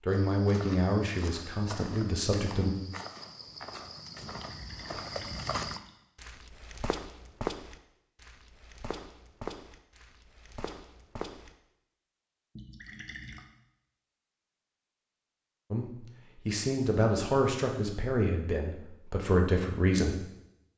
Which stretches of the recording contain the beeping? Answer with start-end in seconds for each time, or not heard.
not heard.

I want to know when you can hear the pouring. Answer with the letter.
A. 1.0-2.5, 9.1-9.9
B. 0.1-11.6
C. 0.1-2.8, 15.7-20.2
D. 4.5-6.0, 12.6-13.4
D.